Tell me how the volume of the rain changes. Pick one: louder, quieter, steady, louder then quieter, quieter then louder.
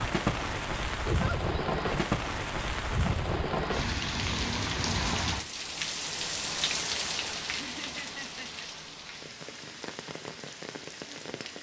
quieter.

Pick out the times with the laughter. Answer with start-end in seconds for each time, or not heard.
1.1-1.6, 7.5-8.7.